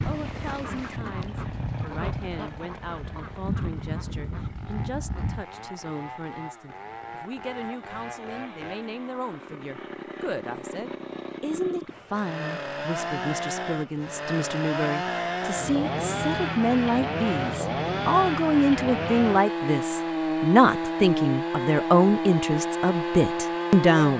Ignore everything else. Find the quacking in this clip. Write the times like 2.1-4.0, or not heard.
0.0-5.5.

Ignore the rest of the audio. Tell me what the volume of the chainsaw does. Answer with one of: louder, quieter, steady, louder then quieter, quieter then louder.
louder.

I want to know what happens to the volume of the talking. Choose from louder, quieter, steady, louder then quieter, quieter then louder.
louder.